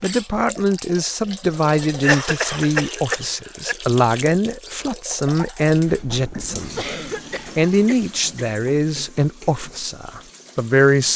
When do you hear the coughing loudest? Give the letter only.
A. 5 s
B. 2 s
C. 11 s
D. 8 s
B.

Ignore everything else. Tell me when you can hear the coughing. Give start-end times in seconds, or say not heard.
2.0-3.8, 6.8-8.4.